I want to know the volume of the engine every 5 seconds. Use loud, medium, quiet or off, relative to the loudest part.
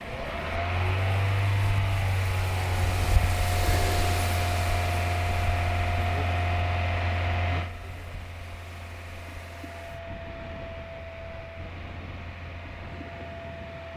loud, loud, medium.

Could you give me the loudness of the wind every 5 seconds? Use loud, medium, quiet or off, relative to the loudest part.
loud, medium, medium.